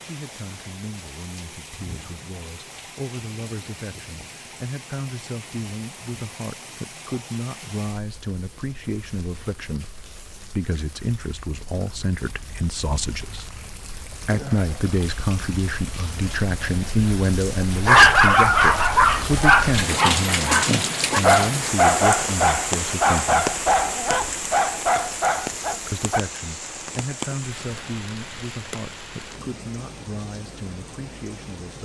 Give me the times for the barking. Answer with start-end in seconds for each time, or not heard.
17.9-26.2.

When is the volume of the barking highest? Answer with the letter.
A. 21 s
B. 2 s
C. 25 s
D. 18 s
D.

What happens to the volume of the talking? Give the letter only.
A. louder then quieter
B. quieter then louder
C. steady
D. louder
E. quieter
A.